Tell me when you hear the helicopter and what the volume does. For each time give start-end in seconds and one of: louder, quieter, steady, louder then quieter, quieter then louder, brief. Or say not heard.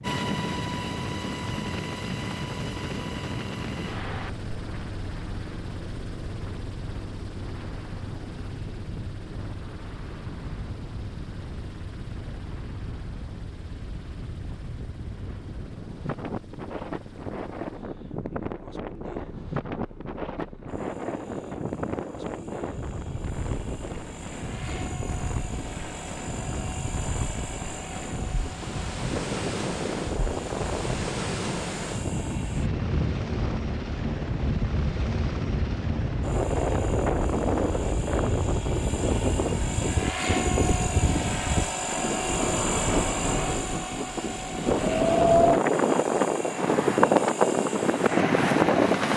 0.0-49.1 quieter then louder.